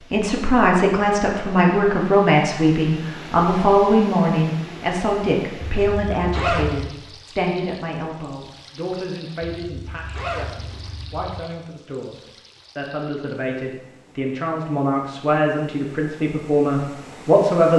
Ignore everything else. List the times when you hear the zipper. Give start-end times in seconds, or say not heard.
5.6-6.9, 9.6-11.4.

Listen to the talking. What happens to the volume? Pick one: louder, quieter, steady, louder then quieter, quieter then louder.
quieter then louder.